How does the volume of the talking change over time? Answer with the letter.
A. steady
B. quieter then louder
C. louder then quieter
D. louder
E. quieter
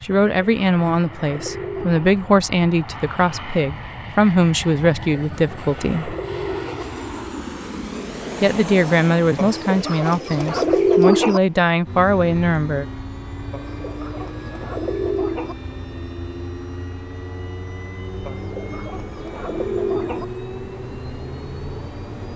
A.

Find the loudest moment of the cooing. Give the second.
11 s.